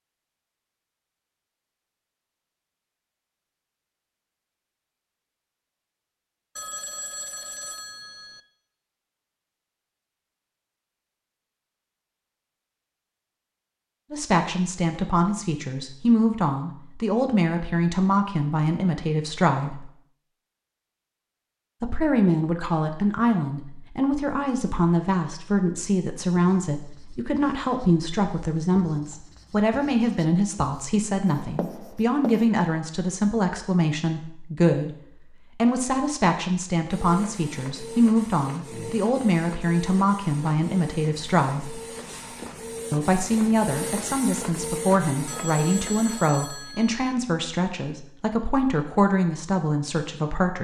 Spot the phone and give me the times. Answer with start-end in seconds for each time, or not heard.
6.5-8.4, 45.2-47.0.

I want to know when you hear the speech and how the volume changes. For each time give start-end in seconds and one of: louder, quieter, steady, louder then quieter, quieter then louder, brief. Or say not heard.
14.1-19.9 steady
21.8-35.0 steady
35.5-41.8 steady
42.9-50.6 steady.